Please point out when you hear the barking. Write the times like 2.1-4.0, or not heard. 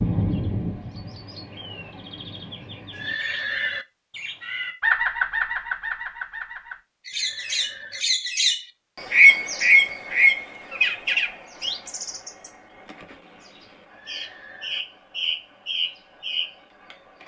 not heard.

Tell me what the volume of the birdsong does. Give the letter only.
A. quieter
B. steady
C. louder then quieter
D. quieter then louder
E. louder
C.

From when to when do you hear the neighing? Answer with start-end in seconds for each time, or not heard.
2.9-3.9, 7.1-8.1, 13.9-14.8.